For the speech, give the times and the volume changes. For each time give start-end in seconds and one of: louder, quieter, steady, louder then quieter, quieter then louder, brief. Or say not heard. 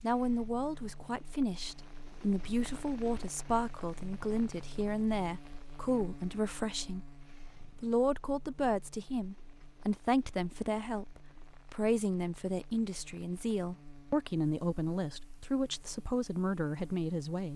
0.0-7.0 steady
7.8-17.5 steady.